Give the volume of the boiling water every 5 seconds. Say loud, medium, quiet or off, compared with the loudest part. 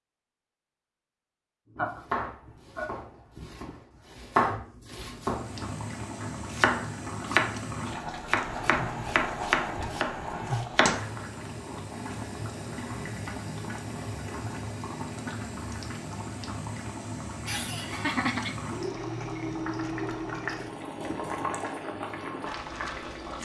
off, loud, loud, loud, loud.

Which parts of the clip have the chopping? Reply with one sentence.
You can hear the chopping from 1.8 to 11.1 s.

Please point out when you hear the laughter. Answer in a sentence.
You can hear the laughter from 1.8 to 3.8 s, from 8.3 to 10.6 s and from 17.4 to 18.6 s.